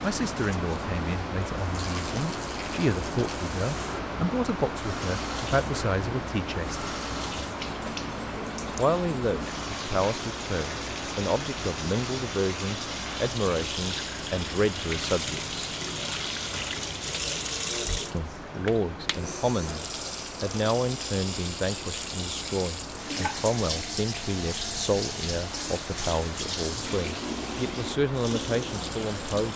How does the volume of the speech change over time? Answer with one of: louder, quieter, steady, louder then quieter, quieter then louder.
steady.